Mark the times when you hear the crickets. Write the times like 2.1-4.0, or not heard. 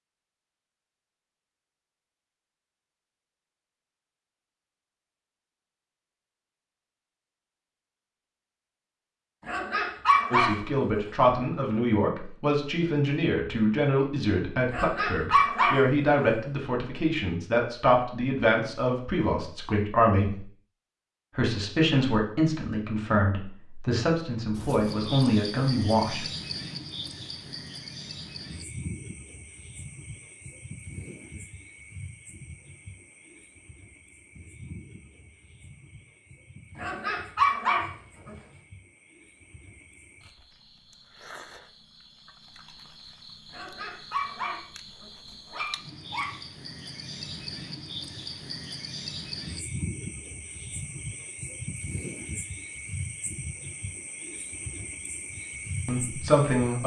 24.6-56.8.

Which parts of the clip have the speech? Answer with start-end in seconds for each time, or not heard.
10.3-20.4, 21.4-26.2, 55.9-56.8.